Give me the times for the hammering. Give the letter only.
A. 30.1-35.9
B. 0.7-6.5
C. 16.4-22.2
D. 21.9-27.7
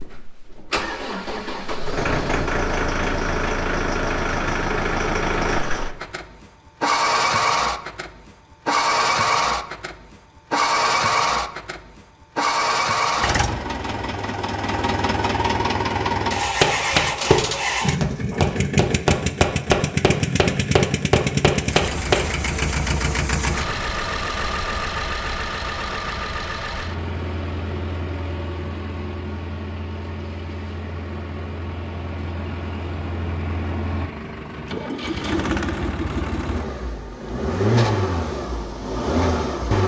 C.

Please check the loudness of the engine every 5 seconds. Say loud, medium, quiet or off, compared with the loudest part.
loud, loud, loud, loud, loud, medium, medium, loud.